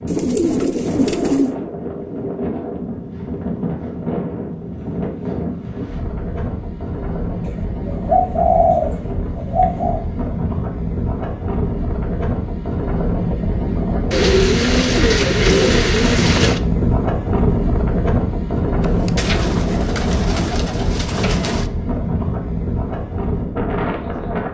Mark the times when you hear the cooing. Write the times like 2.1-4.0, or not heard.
0.1-1.6, 7.5-10.1, 14.1-16.6, 18.8-21.6.